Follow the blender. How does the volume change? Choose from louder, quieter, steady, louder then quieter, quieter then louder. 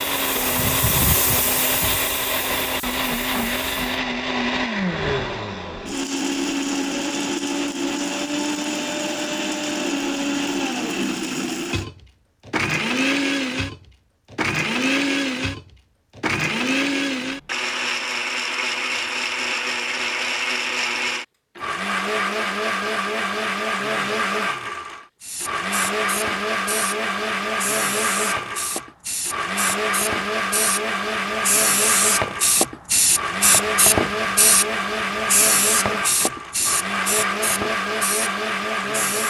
steady.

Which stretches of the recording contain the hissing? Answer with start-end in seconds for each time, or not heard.
0.0-3.8, 25.2-39.2.